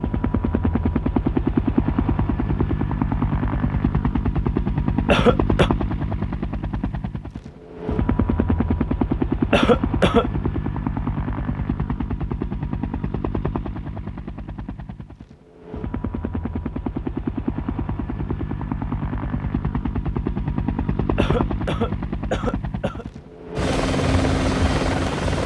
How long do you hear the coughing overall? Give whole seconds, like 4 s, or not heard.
3 s.